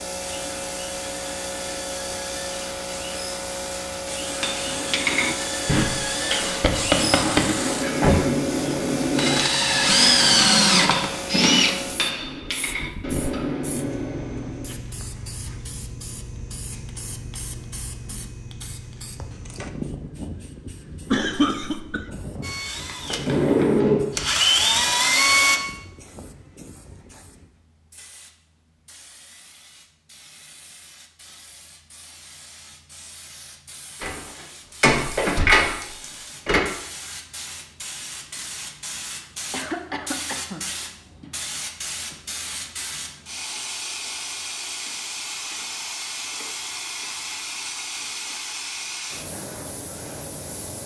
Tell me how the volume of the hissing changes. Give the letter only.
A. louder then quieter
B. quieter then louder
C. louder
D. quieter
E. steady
B.